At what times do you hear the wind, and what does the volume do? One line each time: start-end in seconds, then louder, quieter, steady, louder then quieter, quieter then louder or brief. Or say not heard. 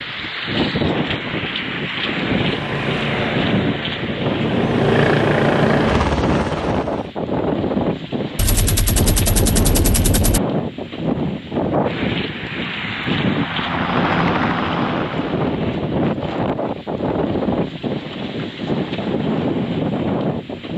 0.0-20.7 steady.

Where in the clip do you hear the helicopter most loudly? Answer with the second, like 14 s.
5 s.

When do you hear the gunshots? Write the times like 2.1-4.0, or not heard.
8.3-10.4.